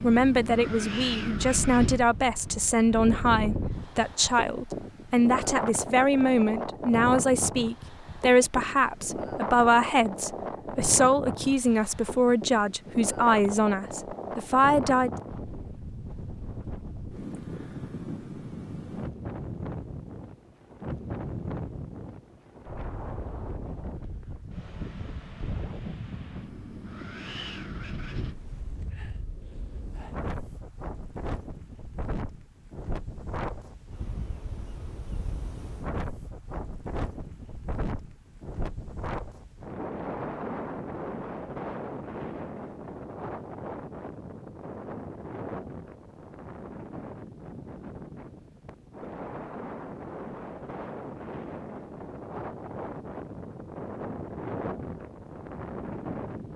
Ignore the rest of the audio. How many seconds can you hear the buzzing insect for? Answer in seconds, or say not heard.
not heard.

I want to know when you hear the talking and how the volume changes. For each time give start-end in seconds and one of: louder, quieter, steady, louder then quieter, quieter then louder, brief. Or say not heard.
0.0-15.1 steady.